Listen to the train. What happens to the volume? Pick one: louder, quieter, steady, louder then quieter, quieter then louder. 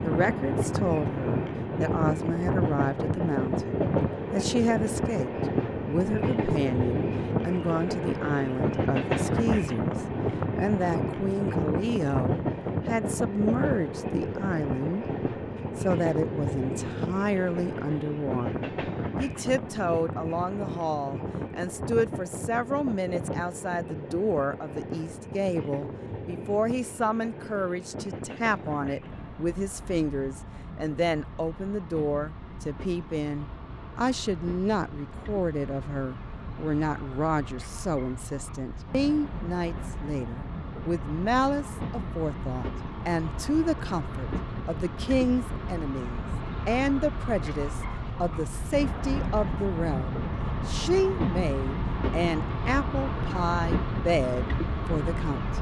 quieter then louder.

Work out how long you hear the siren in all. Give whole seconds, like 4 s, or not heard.
not heard.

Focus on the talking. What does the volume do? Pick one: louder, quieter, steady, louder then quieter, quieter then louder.
steady.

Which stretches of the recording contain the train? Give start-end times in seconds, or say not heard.
0.0-55.5.